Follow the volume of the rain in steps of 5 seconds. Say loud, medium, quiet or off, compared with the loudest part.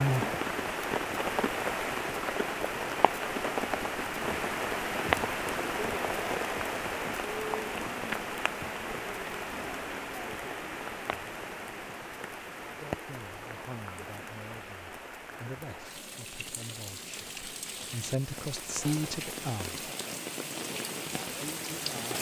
loud, loud, medium, medium, medium.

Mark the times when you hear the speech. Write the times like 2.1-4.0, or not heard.
12.8-19.8, 21.3-22.1.